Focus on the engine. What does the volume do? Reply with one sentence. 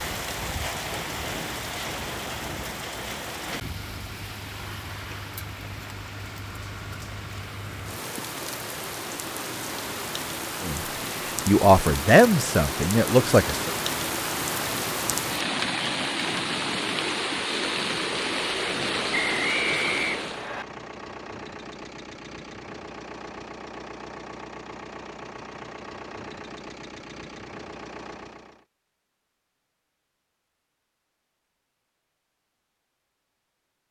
The volume of the engine stays about the same.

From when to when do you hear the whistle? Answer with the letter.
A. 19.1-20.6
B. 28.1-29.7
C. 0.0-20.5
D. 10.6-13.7
A.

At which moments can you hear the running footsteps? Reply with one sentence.
The running footsteps can't be heard in this clip.